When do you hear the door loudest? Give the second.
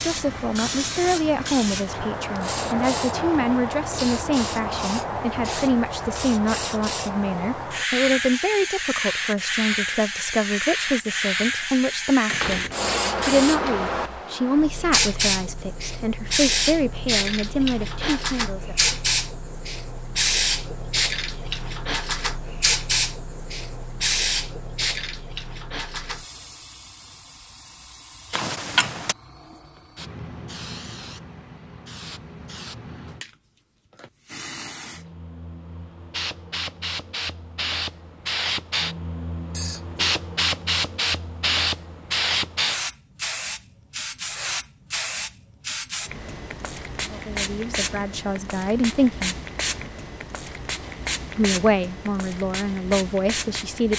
29 s.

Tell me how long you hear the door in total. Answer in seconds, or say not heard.
2 s.